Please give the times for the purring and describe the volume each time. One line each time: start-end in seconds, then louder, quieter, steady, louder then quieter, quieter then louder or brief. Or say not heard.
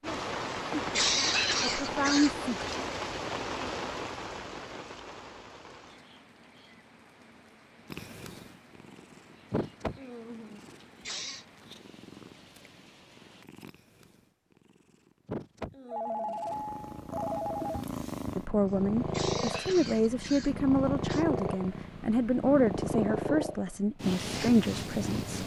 7.9-25.4 quieter then louder.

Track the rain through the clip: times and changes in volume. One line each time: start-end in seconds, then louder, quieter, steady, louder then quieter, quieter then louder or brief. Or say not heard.
0.0-13.4 quieter.